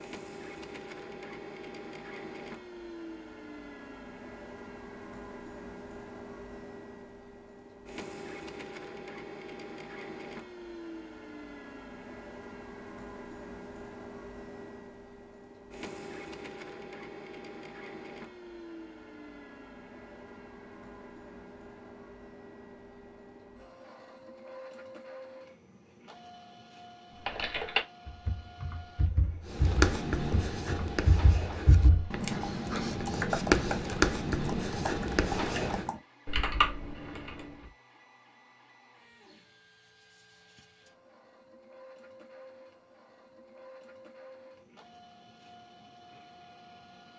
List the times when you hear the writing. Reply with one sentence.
You can hear the writing from 29.4 to 35.9 s.